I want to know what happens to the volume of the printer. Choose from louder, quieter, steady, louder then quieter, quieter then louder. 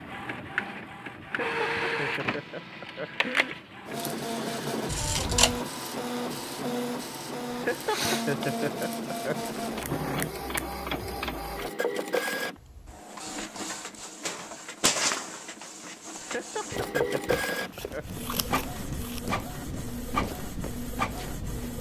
steady.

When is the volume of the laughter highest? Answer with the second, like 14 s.
8 s.